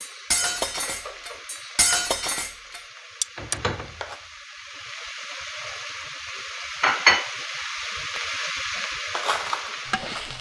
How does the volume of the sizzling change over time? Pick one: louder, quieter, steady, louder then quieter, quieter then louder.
louder then quieter.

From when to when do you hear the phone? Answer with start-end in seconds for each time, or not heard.
not heard.